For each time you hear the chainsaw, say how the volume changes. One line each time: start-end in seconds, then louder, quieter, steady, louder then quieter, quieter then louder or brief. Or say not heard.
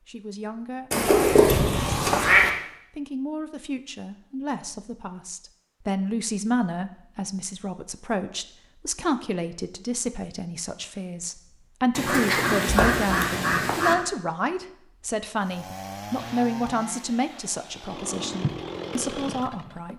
15.3-19.9 quieter then louder.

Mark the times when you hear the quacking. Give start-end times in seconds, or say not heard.
0.9-2.5, 11.9-13.9.